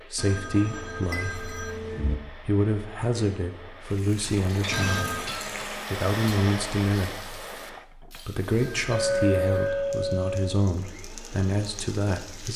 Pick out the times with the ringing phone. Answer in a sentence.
You can hear the ringing phone from 0.1 to 2.1 s, from 4.7 to 5.3 s and from 8.6 to 9.9 s.